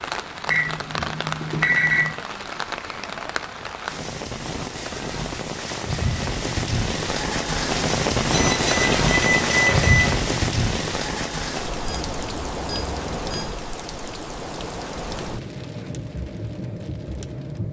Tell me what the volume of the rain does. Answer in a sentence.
The loudness of the rain goes up, then down.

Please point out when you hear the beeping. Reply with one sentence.
You can hear the beeping from 0.5 to 2.1 s, from 8.3 to 10.1 s and from 11.8 to 13.4 s.